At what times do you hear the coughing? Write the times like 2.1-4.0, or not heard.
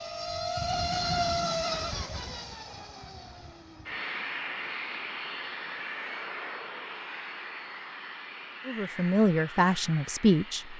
not heard.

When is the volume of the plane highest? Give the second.
1 s.